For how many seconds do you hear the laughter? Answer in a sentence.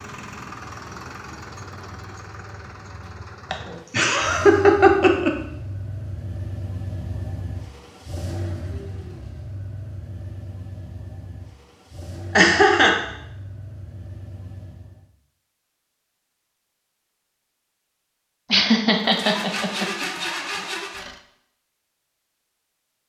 The laughter can be heard for 4 seconds in total.